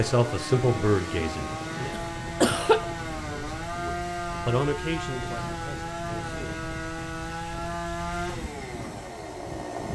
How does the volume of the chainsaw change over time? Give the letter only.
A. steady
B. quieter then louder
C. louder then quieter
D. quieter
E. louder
A.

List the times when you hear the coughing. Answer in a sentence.
You can hear the coughing from 1.9 to 2.9 s.